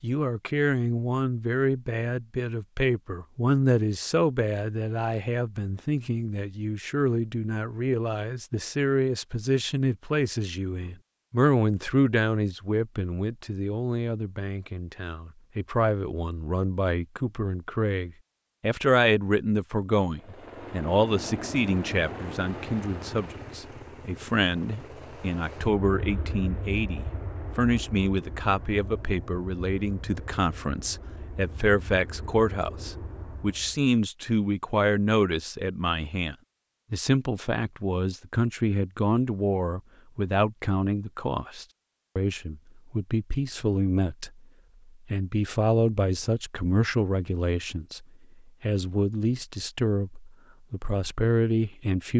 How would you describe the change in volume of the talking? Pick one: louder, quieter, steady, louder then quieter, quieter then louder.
steady.